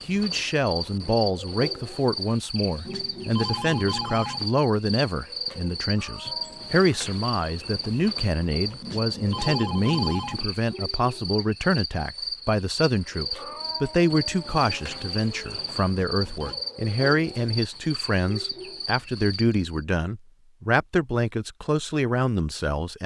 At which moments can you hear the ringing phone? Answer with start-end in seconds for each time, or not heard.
2.9-4.5, 8.8-10.4, 16.1-16.6.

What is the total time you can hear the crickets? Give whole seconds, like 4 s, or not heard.
20 s.